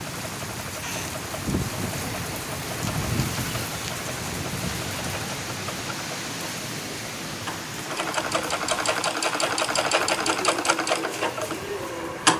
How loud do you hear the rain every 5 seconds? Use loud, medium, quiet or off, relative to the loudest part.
loud, loud, medium.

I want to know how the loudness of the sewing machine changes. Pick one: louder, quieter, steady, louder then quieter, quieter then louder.
louder.